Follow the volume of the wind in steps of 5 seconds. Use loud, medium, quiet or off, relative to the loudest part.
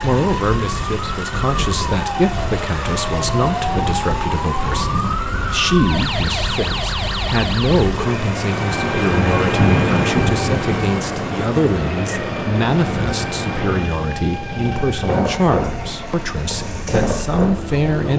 medium, loud, loud, loud.